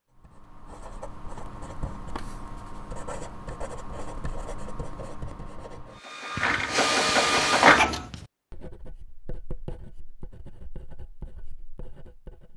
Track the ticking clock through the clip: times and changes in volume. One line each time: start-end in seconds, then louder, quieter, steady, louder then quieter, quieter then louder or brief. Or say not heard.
not heard.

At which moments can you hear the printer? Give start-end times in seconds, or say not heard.
6.0-8.0.